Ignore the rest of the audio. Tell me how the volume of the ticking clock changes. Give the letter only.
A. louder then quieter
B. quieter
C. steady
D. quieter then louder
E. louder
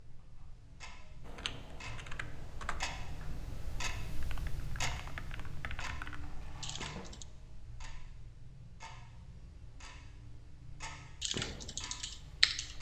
A.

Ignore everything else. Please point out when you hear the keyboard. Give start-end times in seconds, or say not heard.
1.2-7.2, 11.2-12.7.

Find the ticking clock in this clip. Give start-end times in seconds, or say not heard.
0.0-12.7.